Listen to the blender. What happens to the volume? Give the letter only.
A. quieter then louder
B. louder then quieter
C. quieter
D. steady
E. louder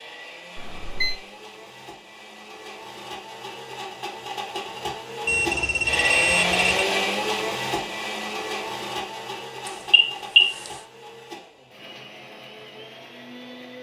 B.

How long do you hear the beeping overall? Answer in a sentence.
You can hear the beeping for 3 seconds altogether.